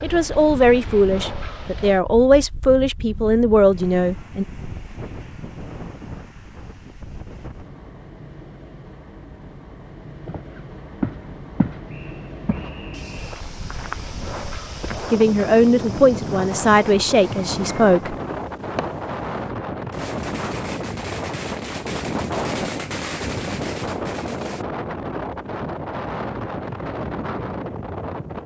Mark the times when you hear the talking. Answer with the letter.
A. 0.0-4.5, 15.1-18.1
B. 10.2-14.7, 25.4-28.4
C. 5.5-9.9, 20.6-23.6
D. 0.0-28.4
A.